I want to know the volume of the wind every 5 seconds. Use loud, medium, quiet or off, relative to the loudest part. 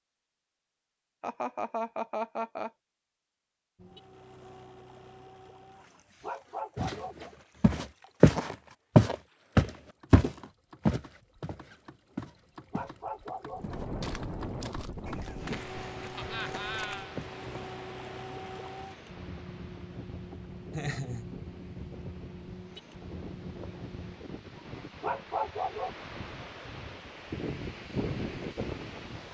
off, off, loud, medium, medium, loud.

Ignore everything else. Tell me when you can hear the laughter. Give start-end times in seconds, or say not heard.
1.2-2.7, 16.1-17.1, 20.7-21.3.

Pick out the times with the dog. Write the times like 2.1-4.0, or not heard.
5.8-7.3, 12.2-13.8, 24.6-26.1.